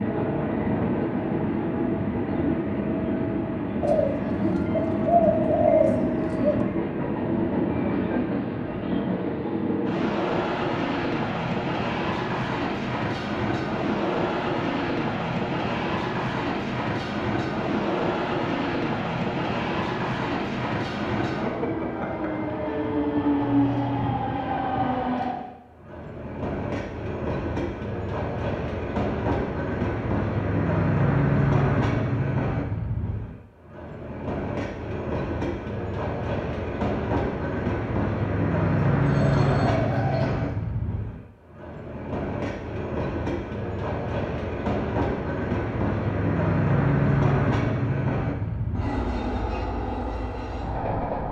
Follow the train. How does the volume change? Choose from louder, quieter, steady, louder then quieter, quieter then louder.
steady.